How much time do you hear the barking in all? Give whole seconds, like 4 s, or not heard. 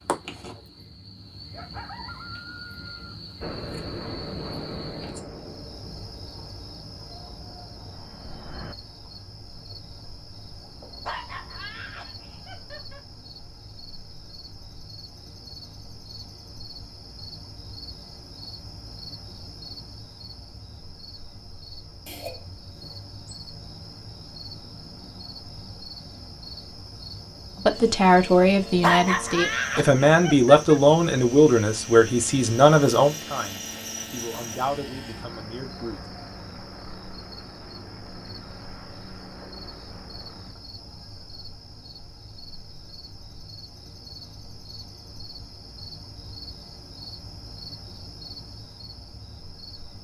4 s.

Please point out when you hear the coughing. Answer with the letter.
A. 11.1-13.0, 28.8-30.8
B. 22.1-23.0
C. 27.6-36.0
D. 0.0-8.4
B.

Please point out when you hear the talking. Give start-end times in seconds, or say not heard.
27.6-36.0.